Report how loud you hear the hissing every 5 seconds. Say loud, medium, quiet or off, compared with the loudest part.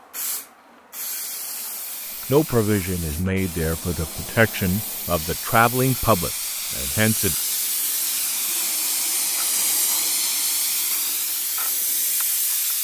medium, loud, loud.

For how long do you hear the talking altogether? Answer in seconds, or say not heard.
5 s.